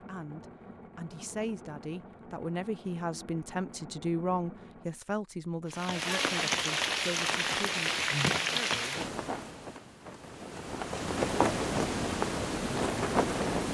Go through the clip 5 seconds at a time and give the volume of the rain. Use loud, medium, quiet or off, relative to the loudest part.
off, loud, loud.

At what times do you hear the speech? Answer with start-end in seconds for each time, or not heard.
0.0-9.1.